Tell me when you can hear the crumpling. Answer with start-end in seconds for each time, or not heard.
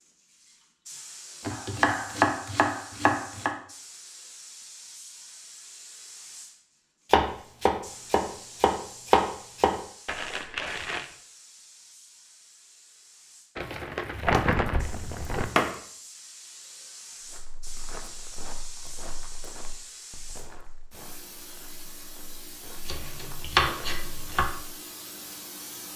10.1-11.1, 13.6-15.4.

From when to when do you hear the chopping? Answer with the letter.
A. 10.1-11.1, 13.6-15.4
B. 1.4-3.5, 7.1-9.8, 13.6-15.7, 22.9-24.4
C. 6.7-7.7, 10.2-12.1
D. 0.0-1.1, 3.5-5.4
B.